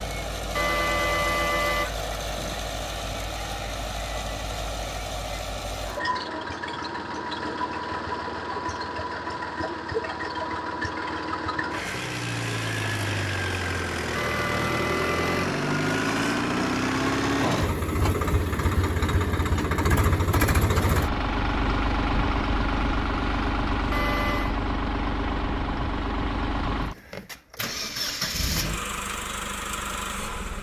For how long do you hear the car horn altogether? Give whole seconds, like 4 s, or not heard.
4 s.